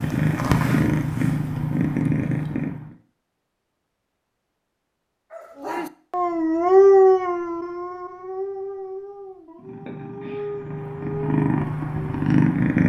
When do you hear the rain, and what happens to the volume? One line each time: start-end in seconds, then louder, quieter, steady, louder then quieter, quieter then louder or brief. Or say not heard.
not heard.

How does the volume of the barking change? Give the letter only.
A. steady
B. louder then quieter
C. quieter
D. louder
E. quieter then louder
C.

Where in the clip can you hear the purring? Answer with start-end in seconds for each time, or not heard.
0.0-3.0, 9.6-12.8.